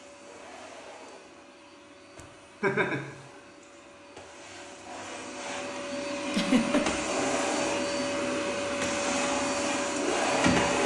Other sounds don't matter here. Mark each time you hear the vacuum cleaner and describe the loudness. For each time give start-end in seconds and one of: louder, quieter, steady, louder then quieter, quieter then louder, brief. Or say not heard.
0.0-10.8 louder.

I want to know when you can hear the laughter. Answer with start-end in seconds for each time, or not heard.
2.6-3.1, 6.3-6.8.